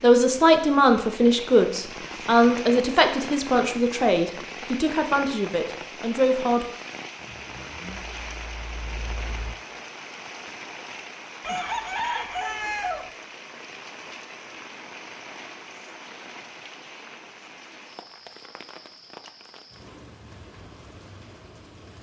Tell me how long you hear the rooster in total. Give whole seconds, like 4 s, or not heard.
2 s.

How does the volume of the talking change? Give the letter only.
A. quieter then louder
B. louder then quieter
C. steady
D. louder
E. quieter
E.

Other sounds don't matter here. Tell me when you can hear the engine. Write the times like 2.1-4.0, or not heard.
7.2-9.6.